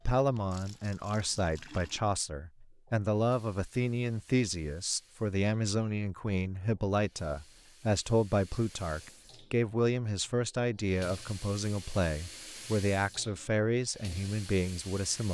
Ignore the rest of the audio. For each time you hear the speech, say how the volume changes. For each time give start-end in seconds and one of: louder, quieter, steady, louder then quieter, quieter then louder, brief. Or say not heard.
0.1-15.2 steady.